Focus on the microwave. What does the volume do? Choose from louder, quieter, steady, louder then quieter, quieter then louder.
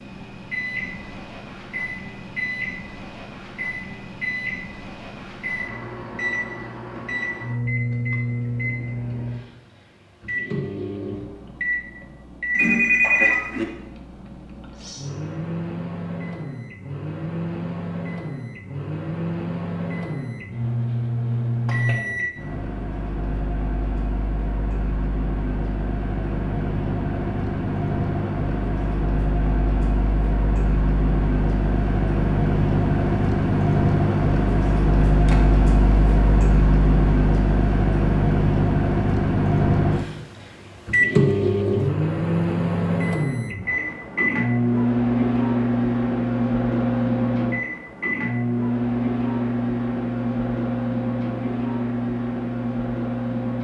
louder.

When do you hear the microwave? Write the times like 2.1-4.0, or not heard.
0.0-53.6.